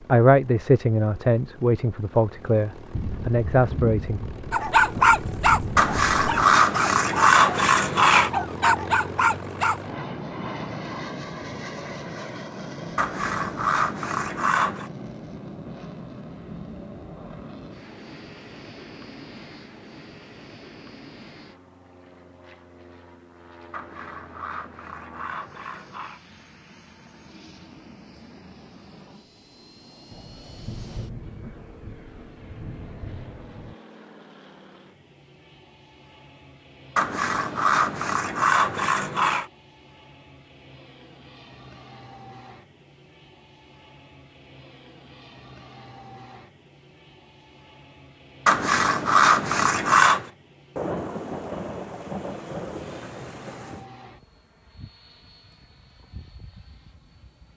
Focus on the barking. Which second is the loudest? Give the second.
5 s.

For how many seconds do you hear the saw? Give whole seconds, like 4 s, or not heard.
11 s.